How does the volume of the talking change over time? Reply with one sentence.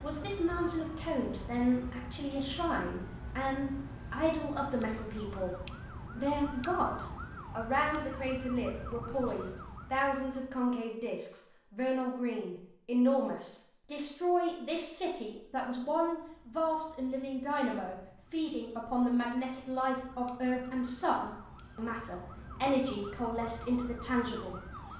The loudness of the talking stays about the same.